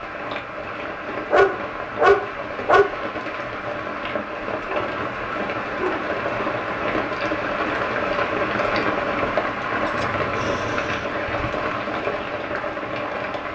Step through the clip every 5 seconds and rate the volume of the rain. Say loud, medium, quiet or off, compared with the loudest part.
medium, loud, loud.